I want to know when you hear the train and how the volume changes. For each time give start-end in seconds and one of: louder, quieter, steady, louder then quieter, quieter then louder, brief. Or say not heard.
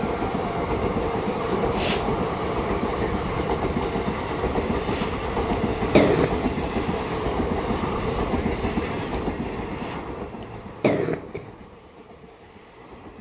0.0-13.1 quieter.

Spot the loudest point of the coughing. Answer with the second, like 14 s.
6 s.